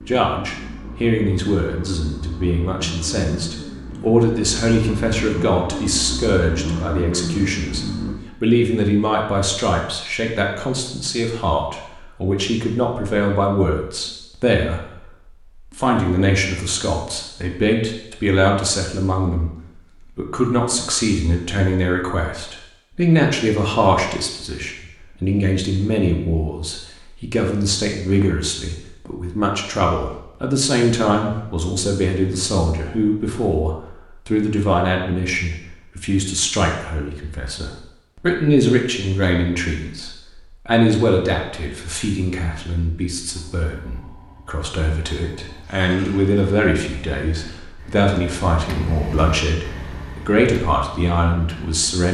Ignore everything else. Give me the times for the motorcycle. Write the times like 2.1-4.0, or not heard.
0.0-8.2, 43.2-51.9.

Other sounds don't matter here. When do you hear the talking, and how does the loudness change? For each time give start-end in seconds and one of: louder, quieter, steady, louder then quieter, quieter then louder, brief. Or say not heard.
0.0-52.0 steady.